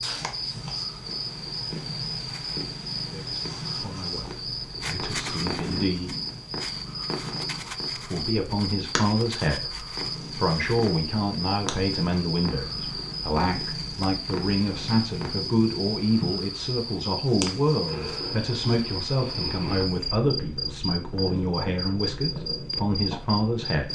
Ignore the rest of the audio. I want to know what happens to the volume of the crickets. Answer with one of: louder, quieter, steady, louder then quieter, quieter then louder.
steady.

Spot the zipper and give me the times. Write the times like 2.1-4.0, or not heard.
not heard.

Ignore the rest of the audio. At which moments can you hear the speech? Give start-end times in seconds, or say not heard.
3.0-6.1, 7.9-23.9.